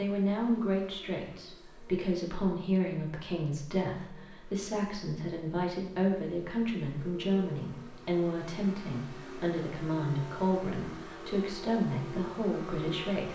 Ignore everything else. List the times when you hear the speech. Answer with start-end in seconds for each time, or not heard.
0.0-13.3.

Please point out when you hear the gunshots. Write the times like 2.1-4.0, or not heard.
not heard.